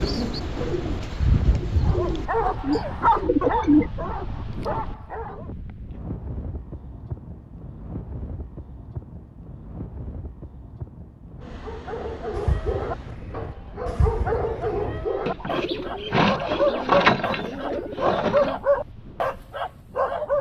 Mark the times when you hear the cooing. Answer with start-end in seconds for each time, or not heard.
0.0-3.9, 12.0-18.6.